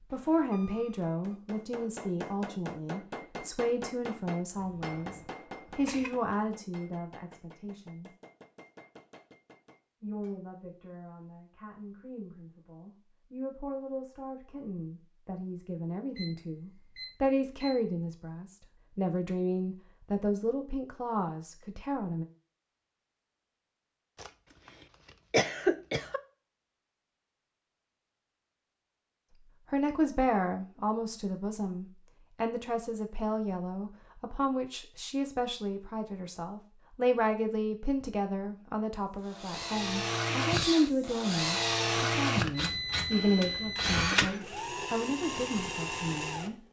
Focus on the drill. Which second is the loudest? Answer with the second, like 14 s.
42 s.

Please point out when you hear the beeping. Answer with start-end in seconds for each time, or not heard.
0.1-1.4, 16.1-17.8, 42.5-44.0.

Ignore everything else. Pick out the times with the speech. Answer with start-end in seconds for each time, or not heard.
0.1-8.1, 10.0-22.2, 29.7-46.6.